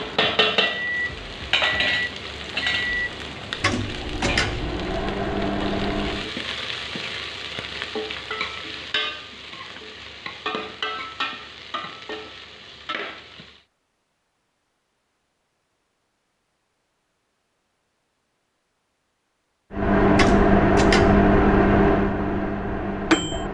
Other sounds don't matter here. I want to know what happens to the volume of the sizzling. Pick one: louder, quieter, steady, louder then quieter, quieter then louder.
quieter.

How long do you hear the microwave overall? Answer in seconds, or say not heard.
10 s.